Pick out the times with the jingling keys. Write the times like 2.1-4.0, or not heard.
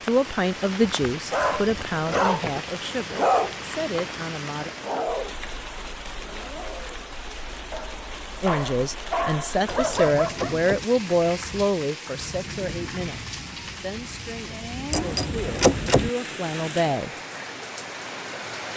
1.4-2.6, 9.7-10.8, 14.9-16.1.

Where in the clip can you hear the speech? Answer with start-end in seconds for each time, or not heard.
0.0-4.7, 8.4-17.1.